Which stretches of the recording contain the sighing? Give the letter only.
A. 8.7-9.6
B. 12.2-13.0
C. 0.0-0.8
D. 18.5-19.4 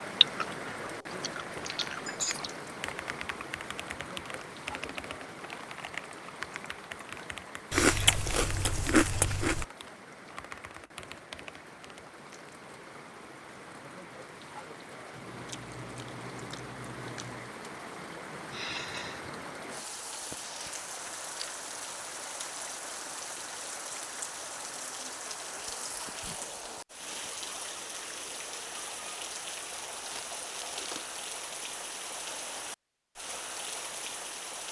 D.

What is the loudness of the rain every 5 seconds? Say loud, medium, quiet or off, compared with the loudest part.
loud, medium, medium, loud, loud, loud, loud.